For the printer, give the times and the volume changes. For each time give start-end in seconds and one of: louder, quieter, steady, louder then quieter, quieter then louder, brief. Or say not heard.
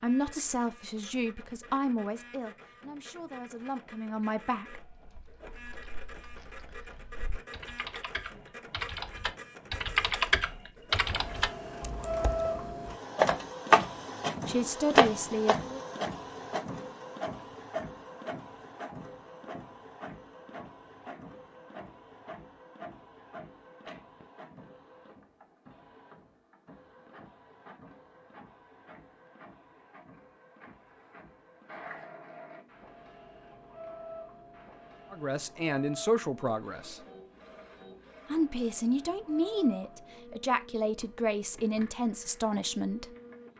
0.0-43.5 louder then quieter.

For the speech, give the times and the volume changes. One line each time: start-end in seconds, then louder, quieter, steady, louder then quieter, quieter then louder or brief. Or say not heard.
0.0-4.8 quieter then louder
14.4-15.8 brief
35.1-37.0 brief
38.3-43.0 steady.